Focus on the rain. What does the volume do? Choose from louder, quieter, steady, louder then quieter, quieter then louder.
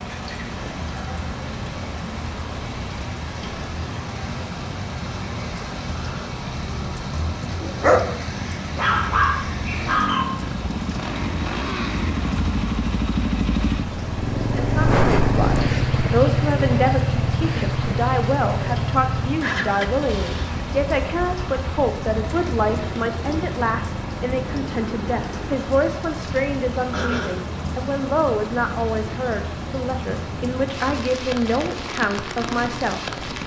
steady.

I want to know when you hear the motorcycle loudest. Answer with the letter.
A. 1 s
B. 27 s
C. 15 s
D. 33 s
C.